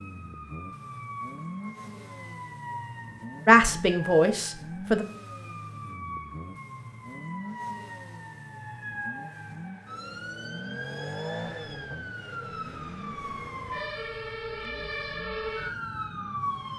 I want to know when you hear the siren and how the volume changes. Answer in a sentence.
You can hear the siren from 0.0 to 16.7 s, getting louder.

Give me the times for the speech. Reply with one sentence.
The speech can be heard from 3.5 to 5.0 s.